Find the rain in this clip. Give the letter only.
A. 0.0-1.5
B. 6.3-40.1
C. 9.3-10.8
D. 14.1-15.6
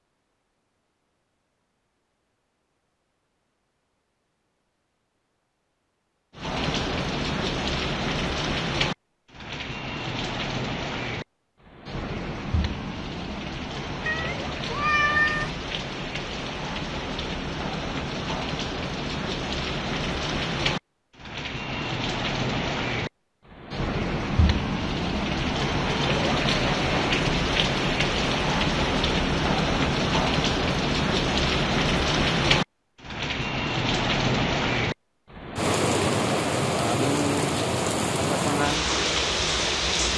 B.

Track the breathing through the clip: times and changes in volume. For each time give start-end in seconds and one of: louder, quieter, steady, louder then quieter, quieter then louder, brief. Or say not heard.
not heard.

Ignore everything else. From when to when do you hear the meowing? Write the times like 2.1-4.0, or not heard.
14.1-15.6.